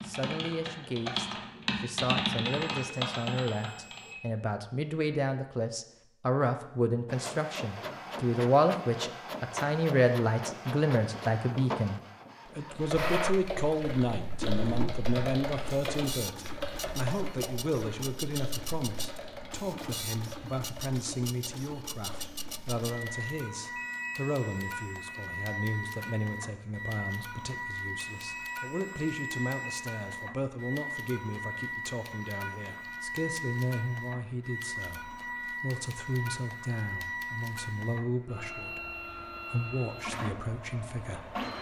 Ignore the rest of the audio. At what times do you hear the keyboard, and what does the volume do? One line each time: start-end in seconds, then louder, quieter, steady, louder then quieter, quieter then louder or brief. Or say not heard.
0.0-4.2 louder then quieter
12.7-23.4 quieter.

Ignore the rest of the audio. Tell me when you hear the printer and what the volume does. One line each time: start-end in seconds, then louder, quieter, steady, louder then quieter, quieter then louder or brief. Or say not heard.
7.0-41.5 steady.